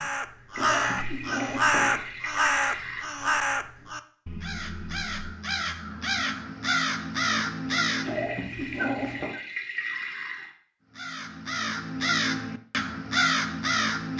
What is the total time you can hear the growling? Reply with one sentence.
You can hear the growling for 3 seconds altogether.